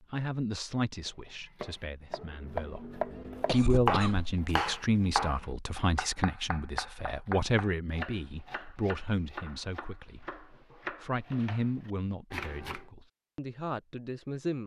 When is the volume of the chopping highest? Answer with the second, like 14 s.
4 s.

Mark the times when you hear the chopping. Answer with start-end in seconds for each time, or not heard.
1.1-12.8.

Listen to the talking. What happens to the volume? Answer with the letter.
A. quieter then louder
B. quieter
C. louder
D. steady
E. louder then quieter
E.